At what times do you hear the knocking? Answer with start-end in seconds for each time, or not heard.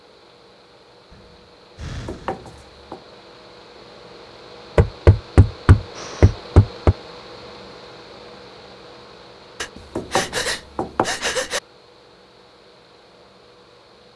2.0-3.0, 4.8-7.0, 9.9-11.1.